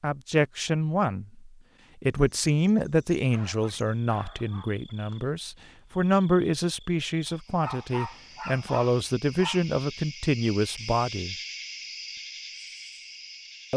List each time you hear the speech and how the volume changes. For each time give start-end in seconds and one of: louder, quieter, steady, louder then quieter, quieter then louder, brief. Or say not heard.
0.0-11.3 steady.